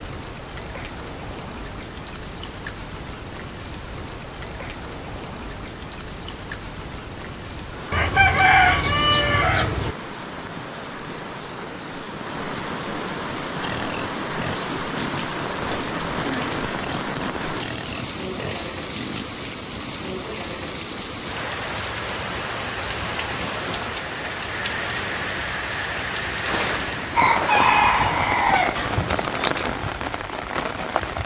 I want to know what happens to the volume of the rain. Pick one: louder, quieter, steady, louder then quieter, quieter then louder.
louder.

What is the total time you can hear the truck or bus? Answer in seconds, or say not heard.
not heard.